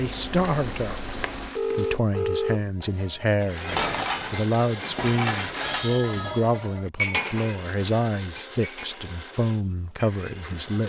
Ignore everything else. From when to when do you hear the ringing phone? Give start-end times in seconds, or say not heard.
1.6-2.6, 5.6-6.5.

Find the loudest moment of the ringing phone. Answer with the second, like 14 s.
2 s.